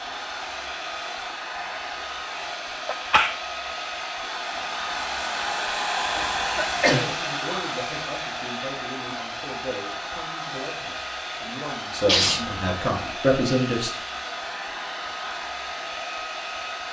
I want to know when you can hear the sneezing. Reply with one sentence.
You can hear the sneezing from 2.4 to 3.4 s, from 6.2 to 7.2 s and from 12.1 to 12.8 s.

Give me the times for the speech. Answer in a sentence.
You can hear the speech from 6.8 to 13.9 s.